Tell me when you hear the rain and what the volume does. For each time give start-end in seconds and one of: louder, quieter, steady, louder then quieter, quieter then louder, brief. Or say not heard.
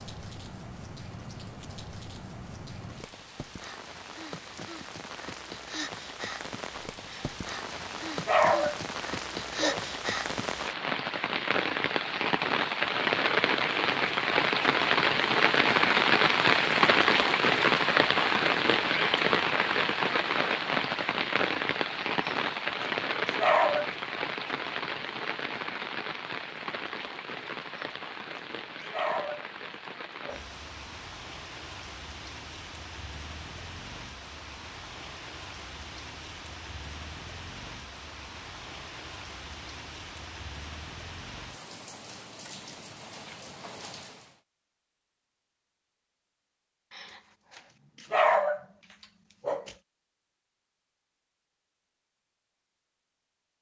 0.0-44.4 louder then quieter.